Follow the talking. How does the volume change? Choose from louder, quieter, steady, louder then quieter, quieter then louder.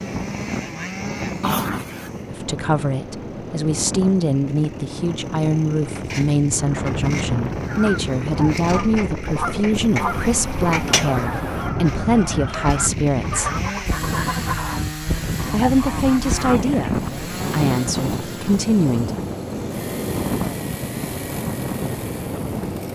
steady.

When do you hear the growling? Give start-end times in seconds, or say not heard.
1.4-2.1.